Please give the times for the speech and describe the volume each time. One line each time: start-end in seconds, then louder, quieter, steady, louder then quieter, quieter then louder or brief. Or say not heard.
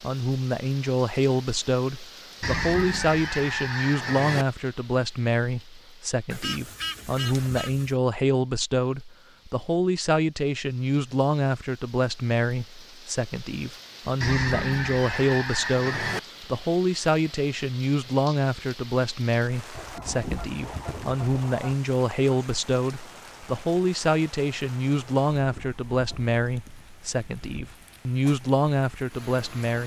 0.0-29.8 steady.